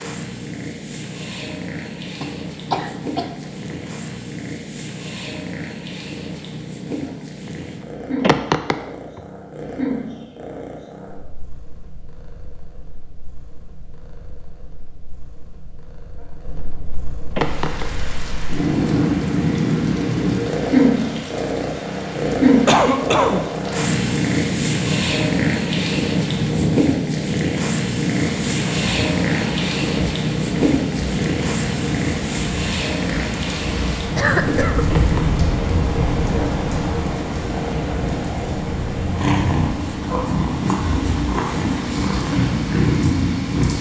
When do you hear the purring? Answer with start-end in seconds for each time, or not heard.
0.0-43.7.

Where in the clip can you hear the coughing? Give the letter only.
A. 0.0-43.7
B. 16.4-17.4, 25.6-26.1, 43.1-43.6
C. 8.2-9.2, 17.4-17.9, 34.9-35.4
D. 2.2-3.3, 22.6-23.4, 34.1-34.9
D.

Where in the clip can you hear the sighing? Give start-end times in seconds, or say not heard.
8.2-9.2, 17.4-17.9, 34.9-35.4.